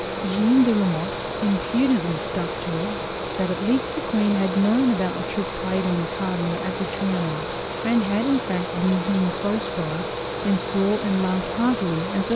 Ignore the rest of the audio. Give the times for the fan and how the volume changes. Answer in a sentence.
The fan can be heard from 0.0 to 12.3 s, at a steady volume.